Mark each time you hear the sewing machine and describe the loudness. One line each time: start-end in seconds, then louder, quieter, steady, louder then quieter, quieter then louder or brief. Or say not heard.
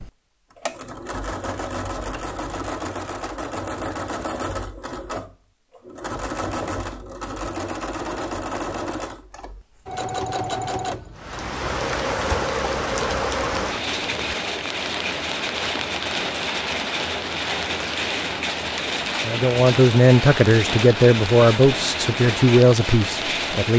0.0-14.3 steady.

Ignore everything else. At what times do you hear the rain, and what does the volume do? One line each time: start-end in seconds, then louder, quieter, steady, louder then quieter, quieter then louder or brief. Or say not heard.
11.2-23.7 steady.